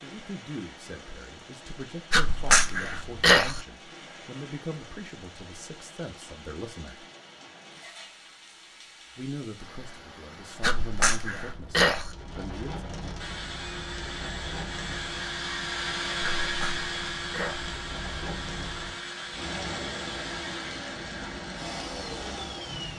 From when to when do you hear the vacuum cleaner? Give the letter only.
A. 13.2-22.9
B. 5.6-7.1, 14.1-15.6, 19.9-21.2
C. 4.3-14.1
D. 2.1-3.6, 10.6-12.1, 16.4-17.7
A.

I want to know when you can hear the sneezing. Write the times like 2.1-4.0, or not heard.
2.1-3.6, 10.6-12.1, 16.4-17.7.